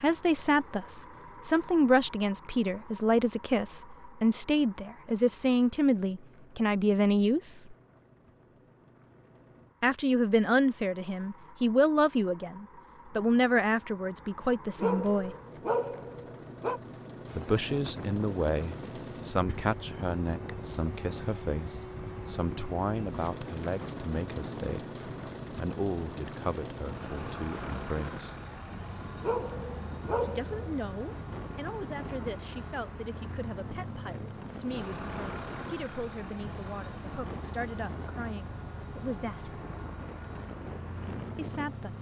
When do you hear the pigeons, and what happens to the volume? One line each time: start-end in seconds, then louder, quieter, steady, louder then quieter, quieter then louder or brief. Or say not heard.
not heard.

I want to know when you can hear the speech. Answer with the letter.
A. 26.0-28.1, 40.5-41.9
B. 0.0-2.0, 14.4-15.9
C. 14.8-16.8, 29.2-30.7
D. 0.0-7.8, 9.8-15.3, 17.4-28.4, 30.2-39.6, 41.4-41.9
D.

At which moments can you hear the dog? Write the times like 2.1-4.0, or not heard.
14.8-16.8, 29.2-30.7.